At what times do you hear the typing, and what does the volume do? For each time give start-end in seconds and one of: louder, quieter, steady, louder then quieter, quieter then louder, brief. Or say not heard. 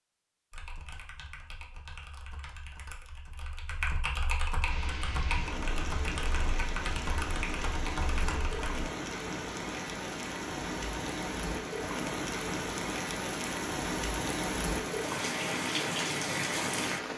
0.5-8.8 louder.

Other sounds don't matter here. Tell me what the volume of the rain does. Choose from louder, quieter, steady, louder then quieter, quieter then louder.
louder.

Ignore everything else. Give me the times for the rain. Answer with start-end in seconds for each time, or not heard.
4.6-17.1.